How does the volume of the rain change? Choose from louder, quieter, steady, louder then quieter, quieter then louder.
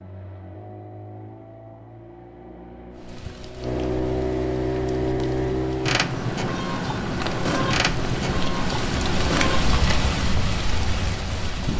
louder.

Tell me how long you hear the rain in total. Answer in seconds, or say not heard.
9 s.